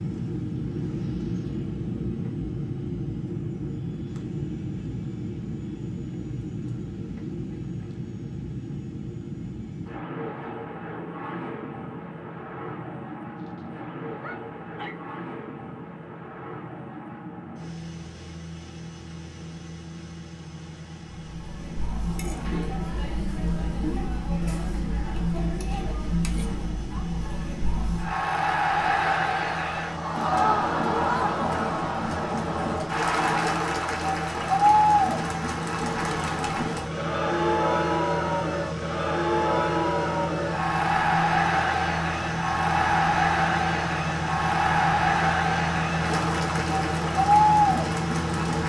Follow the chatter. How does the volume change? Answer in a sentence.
The volume of the chatter goes up.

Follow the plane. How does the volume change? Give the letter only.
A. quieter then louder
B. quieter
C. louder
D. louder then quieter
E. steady
A.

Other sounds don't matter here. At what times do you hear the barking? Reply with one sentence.
You can hear the barking from 13.3 to 14.9 s.